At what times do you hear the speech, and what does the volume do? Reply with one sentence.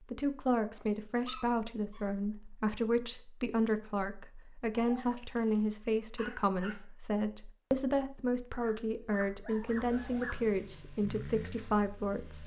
You can hear the speech from 0.1 to 12.4 s, at a steady volume.